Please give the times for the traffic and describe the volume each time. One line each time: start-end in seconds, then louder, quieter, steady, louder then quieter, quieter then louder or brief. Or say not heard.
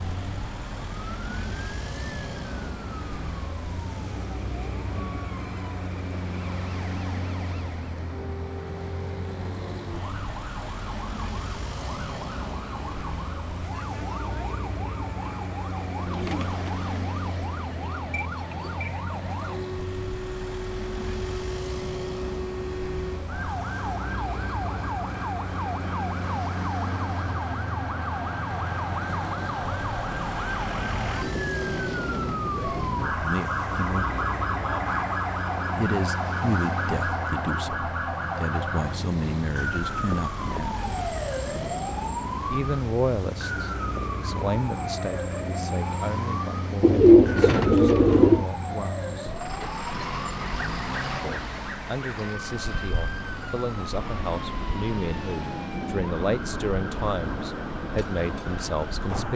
0.0-59.3 steady.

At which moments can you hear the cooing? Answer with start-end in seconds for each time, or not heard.
16.1-18.9, 46.8-48.5.